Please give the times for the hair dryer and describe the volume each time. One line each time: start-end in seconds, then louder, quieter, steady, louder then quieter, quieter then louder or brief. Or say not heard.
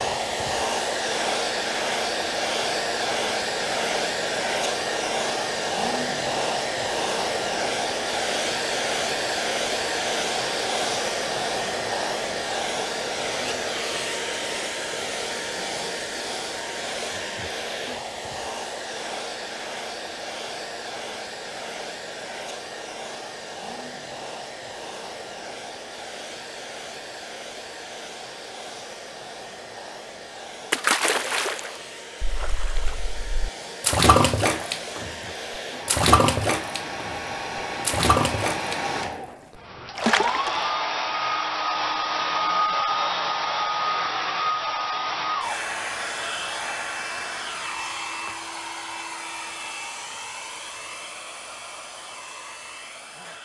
0.0-53.4 quieter then louder.